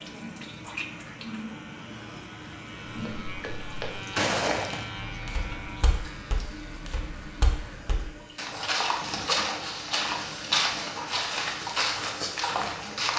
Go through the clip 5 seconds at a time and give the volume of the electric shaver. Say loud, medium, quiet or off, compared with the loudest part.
loud, loud, off.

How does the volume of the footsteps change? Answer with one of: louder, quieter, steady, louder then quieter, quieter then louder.
quieter then louder.